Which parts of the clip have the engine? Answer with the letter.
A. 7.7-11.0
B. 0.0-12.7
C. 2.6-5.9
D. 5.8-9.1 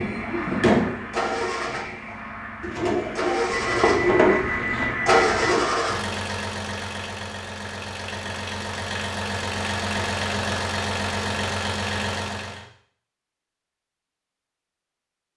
B.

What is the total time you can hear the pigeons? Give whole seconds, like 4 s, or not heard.
3 s.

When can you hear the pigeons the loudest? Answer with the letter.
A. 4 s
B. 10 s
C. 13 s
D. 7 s
A.